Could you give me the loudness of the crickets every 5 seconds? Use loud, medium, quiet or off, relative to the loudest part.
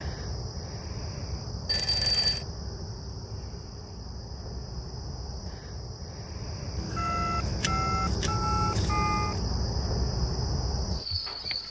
medium, loud, loud.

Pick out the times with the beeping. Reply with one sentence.
You can hear the beeping from 1.6 to 2.5 s and from 6.8 to 9.4 s.